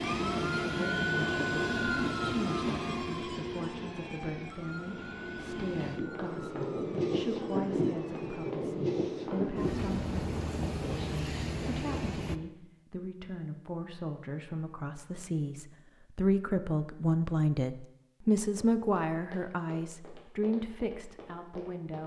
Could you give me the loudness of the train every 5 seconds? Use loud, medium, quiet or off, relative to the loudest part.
loud, loud, loud, off, off.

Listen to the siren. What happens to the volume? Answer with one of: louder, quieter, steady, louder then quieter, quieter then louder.
quieter.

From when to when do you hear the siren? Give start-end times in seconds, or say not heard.
0.0-8.6.